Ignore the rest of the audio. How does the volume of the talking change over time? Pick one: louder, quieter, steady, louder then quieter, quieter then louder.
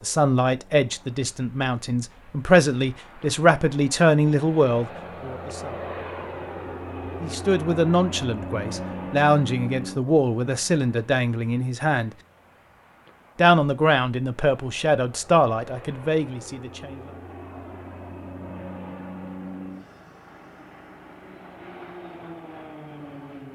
steady.